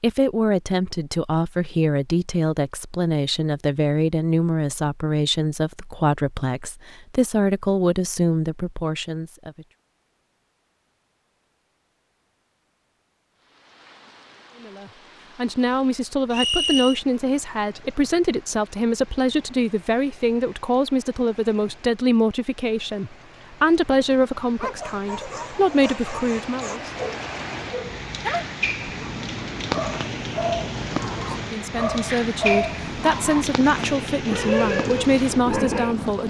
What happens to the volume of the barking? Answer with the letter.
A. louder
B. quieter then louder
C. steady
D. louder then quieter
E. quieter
A.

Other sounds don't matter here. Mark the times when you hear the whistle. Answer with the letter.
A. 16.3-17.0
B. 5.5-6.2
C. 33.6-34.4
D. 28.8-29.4
A.